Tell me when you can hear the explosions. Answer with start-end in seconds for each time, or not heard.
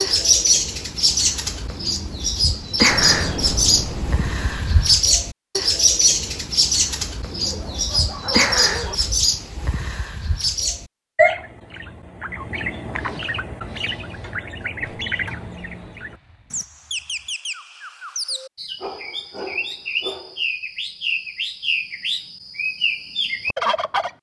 2.9-4.9, 14.8-17.2.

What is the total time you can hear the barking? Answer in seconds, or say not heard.
3 s.